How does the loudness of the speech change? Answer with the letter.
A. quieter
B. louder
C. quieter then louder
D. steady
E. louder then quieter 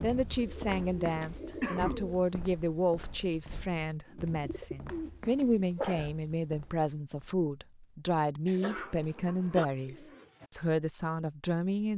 D.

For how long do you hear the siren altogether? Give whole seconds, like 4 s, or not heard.
not heard.